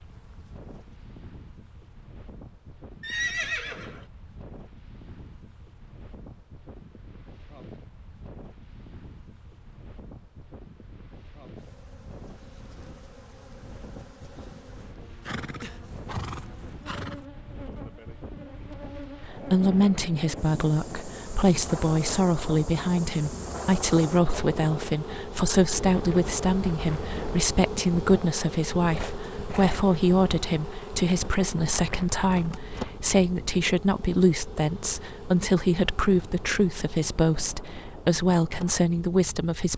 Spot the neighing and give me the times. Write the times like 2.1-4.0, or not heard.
3.0-4.0, 15.2-17.2, 28.9-29.9.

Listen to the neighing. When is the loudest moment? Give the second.
3 s.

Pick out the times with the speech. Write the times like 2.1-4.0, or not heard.
19.2-39.7.